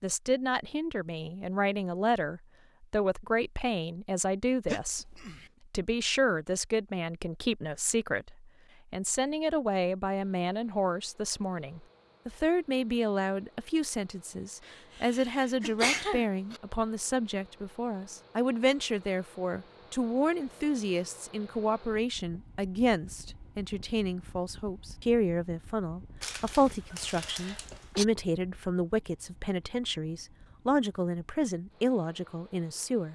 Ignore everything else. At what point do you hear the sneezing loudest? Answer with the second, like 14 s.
16 s.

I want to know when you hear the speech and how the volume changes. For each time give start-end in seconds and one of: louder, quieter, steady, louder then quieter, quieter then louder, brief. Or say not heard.
0.0-33.0 steady.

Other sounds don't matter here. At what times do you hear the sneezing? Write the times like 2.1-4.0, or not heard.
4.7-5.5, 14.7-16.6, 26.2-28.1.